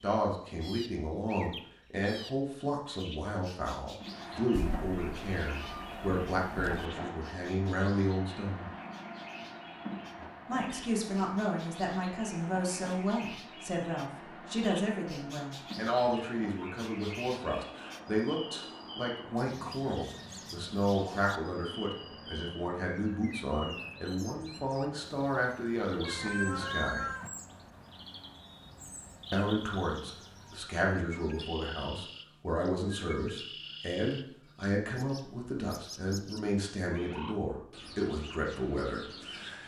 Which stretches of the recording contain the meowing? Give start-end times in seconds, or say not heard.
4.5-6.8, 26.1-27.3.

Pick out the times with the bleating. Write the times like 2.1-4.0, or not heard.
not heard.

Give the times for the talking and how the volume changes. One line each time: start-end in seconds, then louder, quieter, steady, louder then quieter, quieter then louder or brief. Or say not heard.
0.0-8.7 steady
10.4-27.1 steady
29.3-39.6 steady.